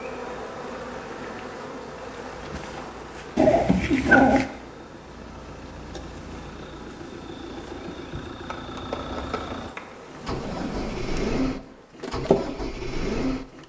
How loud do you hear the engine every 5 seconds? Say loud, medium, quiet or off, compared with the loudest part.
quiet, medium, loud.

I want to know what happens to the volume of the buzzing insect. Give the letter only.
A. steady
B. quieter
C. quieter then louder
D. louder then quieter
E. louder
C.